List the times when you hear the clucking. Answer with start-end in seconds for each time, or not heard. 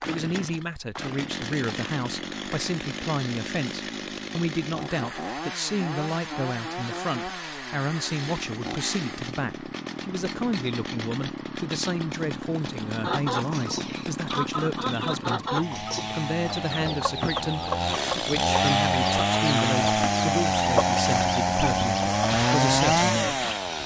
13.0-23.6.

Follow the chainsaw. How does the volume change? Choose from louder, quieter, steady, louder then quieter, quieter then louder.
louder.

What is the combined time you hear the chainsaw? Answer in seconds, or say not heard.
24 s.